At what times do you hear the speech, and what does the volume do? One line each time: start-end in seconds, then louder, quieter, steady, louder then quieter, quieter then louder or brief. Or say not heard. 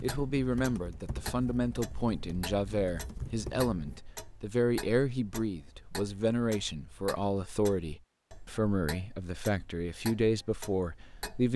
0.0-11.5 steady.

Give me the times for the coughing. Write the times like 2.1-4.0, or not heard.
not heard.